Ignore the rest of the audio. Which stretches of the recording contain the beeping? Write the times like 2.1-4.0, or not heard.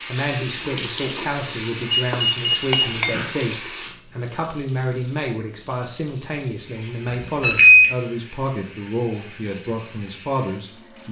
1.9-3.3, 7.1-7.9.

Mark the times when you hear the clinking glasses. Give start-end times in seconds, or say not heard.
2.1-3.2.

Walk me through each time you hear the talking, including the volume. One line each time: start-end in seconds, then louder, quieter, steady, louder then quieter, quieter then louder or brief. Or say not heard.
0.1-11.0 steady.